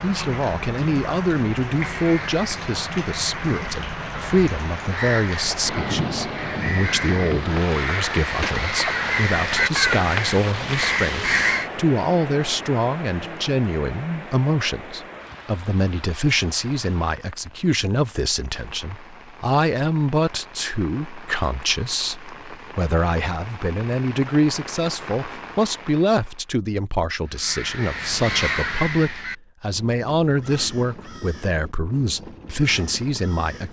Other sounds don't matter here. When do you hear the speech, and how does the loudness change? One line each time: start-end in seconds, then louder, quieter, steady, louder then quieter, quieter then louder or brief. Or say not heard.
0.0-33.6 steady.